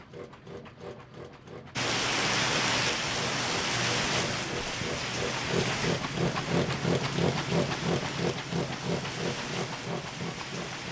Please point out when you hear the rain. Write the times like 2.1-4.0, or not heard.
1.8-10.8.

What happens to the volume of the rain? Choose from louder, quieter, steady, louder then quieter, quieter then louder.
quieter.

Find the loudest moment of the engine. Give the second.
7 s.